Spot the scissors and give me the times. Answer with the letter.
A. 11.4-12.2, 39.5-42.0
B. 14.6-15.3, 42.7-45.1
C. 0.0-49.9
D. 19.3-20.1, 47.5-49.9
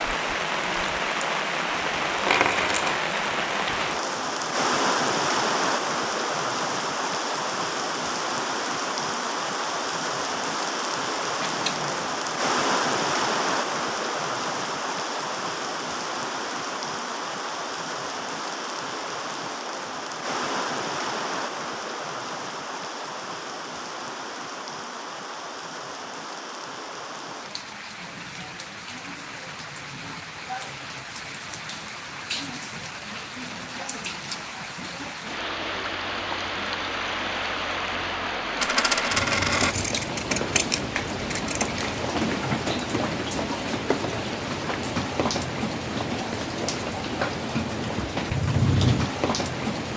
A.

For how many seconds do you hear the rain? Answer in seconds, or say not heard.
50 s.